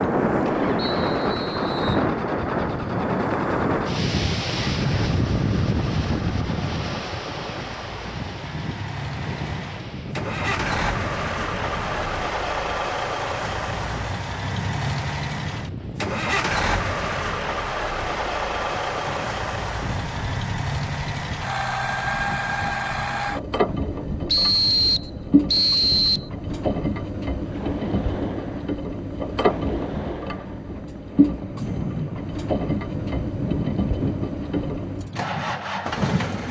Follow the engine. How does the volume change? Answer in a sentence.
The loudness of the engine goes up.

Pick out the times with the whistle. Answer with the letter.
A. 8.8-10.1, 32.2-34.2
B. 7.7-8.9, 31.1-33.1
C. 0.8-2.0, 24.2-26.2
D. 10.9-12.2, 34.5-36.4
C.